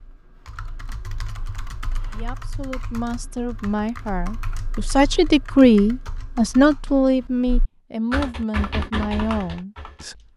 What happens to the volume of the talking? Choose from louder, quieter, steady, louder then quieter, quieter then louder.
louder then quieter.